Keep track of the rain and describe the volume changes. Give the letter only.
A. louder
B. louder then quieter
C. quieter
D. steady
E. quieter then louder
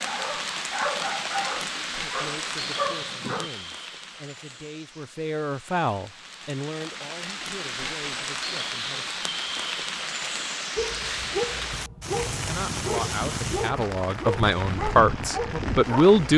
E.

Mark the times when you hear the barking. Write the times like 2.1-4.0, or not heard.
0.0-3.5, 10.8-16.3.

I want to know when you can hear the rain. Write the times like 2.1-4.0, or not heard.
0.0-16.3.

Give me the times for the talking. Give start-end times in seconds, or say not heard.
2.0-9.2, 12.4-16.3.